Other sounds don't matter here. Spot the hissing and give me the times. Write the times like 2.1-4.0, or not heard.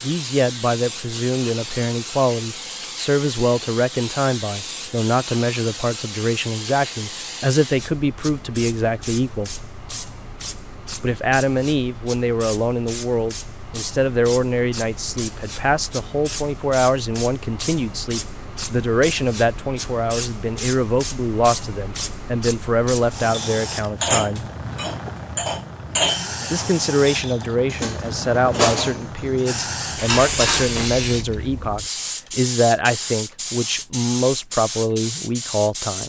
0.0-36.0.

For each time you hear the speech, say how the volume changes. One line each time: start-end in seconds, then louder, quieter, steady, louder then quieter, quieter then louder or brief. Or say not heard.
0.0-9.7 steady
11.0-24.4 steady
26.5-36.0 steady.